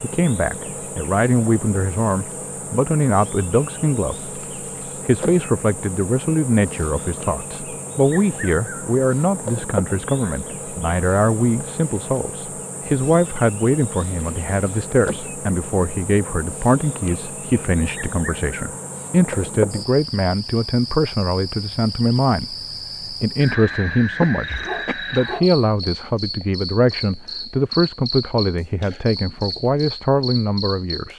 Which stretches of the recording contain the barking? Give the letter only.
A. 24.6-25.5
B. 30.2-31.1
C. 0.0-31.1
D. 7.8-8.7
A.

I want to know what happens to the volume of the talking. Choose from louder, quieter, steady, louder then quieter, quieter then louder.
steady.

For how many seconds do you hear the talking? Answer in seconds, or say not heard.
31 s.